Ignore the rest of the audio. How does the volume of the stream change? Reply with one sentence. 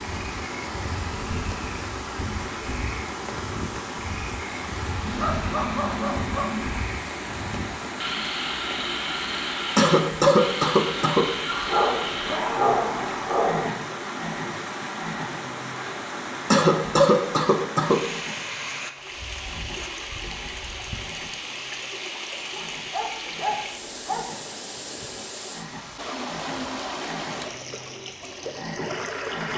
The loudness of the stream stays about the same.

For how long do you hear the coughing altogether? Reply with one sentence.
The coughing can be heard for 3 seconds in total.